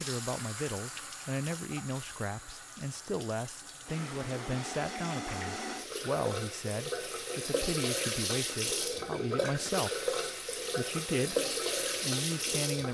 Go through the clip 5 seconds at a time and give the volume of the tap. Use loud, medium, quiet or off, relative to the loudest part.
medium, loud, loud.